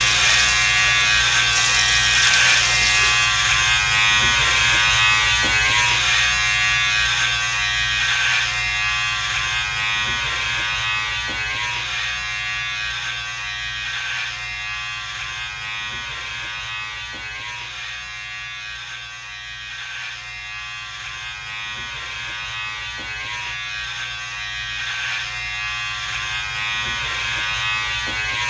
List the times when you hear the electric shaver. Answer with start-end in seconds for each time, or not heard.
0.0-28.4.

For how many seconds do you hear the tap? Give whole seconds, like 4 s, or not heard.
3 s.